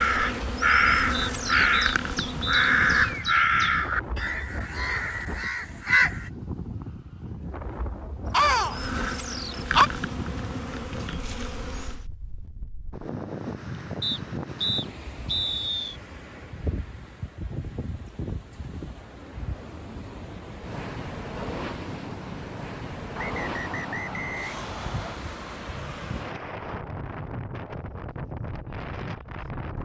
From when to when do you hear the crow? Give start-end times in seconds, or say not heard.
0.0-6.3, 8.3-9.9.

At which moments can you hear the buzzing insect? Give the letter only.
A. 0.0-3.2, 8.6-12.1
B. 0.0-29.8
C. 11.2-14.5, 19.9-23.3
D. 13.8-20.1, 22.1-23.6
A.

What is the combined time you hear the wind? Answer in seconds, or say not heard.
30 s.